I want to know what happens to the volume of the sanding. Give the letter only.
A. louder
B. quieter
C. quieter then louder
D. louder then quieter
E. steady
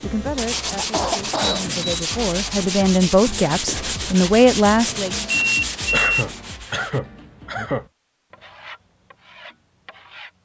B.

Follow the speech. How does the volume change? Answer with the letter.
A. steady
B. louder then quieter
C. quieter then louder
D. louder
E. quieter
D.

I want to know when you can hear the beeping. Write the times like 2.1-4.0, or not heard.
1.4-1.9, 5.3-6.2.